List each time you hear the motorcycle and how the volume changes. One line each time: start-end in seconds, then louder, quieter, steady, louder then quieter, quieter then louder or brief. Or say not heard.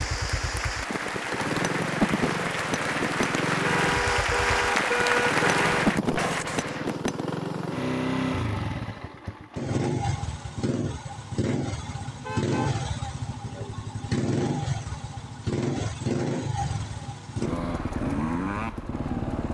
0.0-19.4 steady.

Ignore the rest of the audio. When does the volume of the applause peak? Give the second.
5 s.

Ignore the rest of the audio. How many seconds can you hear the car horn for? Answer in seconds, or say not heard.
3 s.